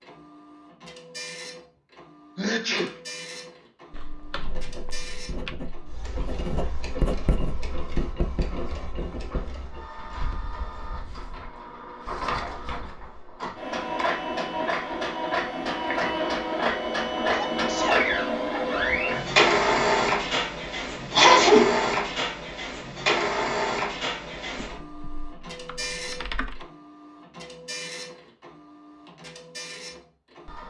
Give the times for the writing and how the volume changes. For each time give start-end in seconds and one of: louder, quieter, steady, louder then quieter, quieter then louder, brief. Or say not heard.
4.3-11.5 louder then quieter.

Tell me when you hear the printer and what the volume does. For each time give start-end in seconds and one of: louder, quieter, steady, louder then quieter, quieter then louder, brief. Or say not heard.
0.0-30.6 louder then quieter.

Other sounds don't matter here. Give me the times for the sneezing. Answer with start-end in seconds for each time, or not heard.
2.4-3.0, 17.3-18.1, 21.1-21.9.